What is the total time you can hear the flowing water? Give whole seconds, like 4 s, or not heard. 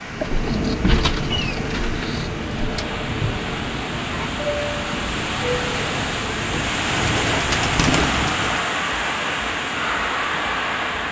11 s.